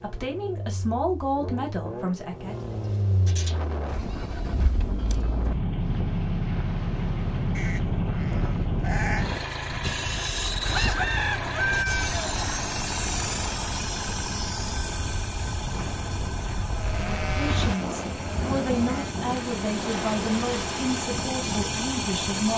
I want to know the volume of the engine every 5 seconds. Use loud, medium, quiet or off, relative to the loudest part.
medium, loud, loud, medium, loud.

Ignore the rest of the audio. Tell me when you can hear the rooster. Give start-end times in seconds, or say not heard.
10.6-12.4.